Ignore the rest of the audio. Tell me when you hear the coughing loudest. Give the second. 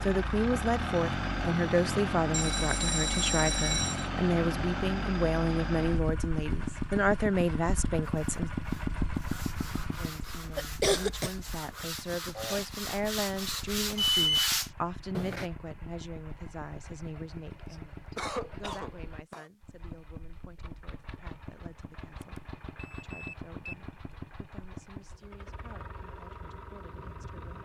11 s.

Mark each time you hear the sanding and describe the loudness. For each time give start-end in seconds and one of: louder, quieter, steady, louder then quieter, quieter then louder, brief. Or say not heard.
8.1-15.5 louder.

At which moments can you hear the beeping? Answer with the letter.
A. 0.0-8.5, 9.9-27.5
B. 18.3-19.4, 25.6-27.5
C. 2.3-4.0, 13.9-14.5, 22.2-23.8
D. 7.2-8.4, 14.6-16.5
C.